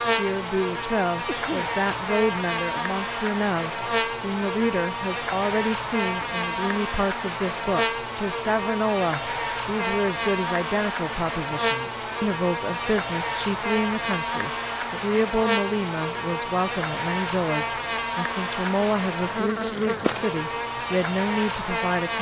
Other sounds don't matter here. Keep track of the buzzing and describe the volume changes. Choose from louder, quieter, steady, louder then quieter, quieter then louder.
steady.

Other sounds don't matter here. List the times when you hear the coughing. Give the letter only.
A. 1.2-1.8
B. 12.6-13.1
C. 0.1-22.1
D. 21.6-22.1
A.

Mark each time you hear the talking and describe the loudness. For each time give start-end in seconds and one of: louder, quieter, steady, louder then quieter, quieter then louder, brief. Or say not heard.
0.1-22.1 steady.